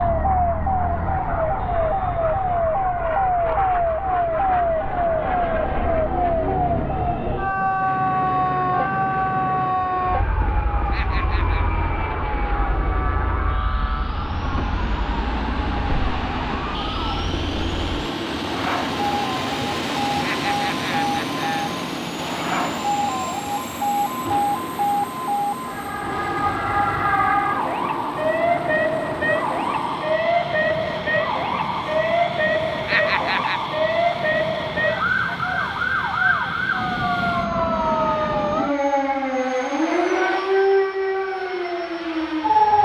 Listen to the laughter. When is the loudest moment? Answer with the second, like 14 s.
33 s.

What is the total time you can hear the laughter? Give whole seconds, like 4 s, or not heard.
3 s.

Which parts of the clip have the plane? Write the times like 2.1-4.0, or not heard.
0.0-42.8.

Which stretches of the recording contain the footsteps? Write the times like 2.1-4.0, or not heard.
not heard.